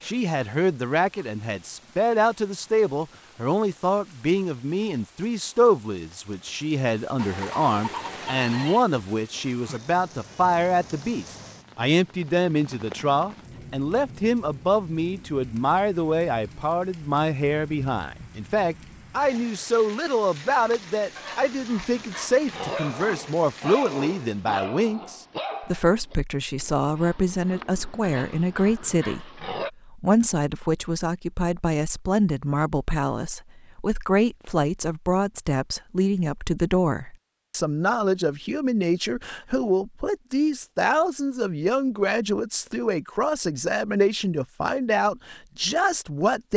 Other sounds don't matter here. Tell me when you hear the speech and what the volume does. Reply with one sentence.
The speech can be heard from 0.0 to 46.5 s, at a steady volume.